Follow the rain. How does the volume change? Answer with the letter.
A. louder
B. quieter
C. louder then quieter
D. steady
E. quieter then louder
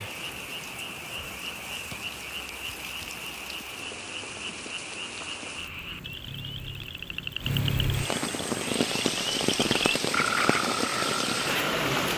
A.